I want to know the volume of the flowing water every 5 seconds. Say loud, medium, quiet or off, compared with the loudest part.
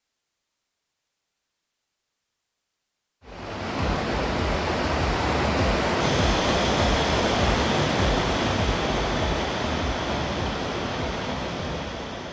loud, loud, medium.